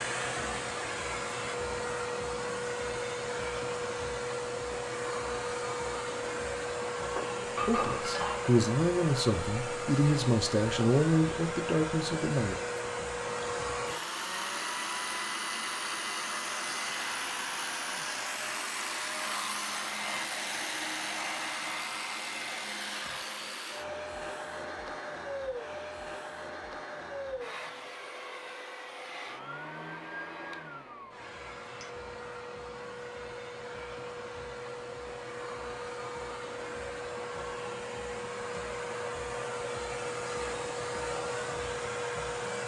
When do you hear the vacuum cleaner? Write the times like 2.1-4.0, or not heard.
0.0-42.6.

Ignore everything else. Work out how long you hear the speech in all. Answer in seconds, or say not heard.
5 s.